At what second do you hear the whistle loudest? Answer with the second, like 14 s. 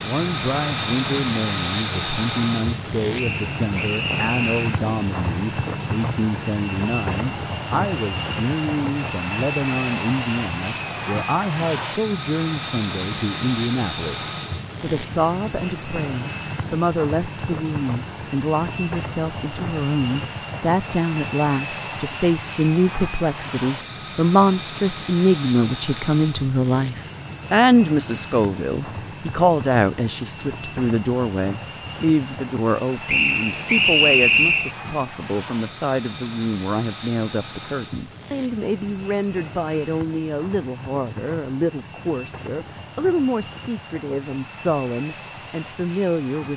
34 s.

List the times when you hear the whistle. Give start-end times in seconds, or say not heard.
3.1-4.8, 33.0-34.8.